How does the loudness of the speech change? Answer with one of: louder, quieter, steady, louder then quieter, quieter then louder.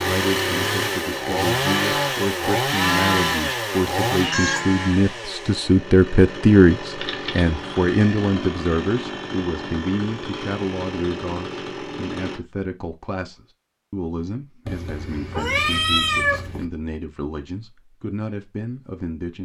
louder then quieter.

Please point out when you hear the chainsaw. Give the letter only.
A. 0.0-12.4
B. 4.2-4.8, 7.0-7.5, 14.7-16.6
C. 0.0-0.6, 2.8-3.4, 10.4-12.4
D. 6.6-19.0
A.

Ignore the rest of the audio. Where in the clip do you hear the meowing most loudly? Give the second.
16 s.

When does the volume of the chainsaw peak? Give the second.
3 s.